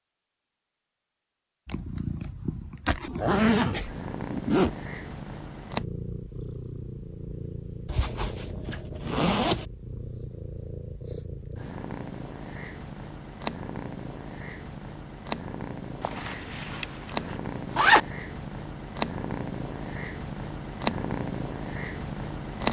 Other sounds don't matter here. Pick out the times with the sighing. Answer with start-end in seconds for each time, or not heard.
not heard.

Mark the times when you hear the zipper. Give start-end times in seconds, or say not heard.
2.9-4.7, 7.8-9.7, 16.0-18.0.